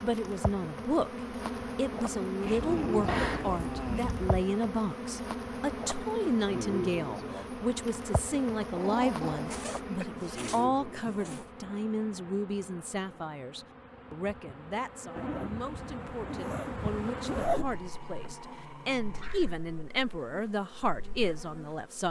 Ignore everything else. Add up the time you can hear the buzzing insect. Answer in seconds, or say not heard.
22 s.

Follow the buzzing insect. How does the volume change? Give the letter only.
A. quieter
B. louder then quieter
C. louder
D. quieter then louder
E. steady
A.